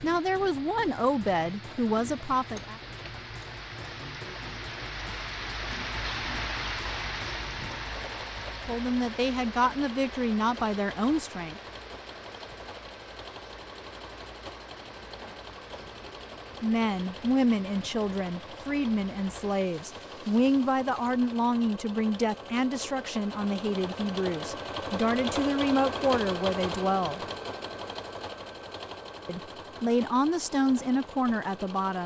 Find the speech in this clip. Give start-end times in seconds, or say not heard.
0.0-2.8, 8.7-11.6, 16.6-27.2, 29.2-32.0.